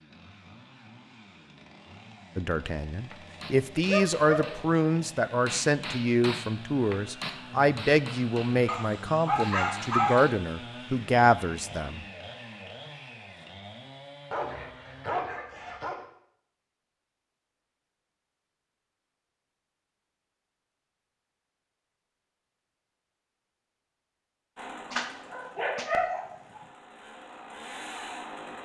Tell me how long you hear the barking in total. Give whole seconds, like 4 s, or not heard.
6 s.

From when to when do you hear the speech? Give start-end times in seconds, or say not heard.
2.4-12.1.